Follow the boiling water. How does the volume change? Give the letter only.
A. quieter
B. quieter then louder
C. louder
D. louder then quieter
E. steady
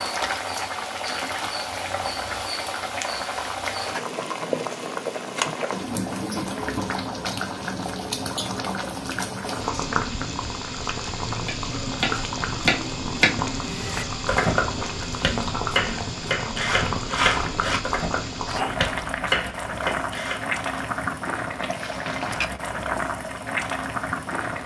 E.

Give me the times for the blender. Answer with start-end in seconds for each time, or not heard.
not heard.